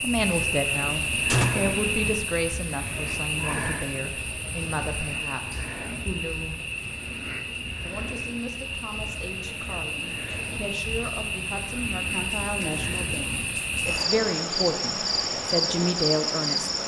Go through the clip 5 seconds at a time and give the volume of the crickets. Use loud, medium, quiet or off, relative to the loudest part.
loud, medium, loud, loud.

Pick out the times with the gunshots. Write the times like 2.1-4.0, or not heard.
1.2-1.8.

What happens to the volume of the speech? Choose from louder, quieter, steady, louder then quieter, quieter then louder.
quieter then louder.